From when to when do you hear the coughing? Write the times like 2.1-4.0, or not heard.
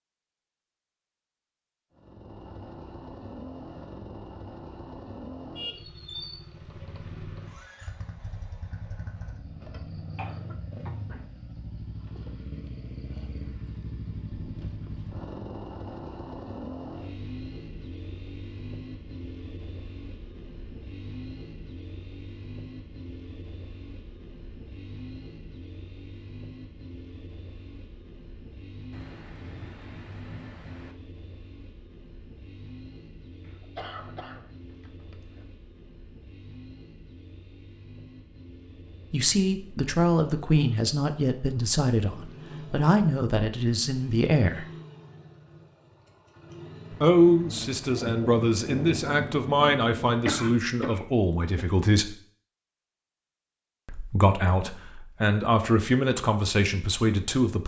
10.2-11.2, 33.4-35.5, 50.2-51.6.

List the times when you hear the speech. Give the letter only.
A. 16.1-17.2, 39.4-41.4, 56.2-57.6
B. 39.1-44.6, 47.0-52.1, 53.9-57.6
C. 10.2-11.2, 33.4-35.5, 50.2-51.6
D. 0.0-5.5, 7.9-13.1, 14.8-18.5
B.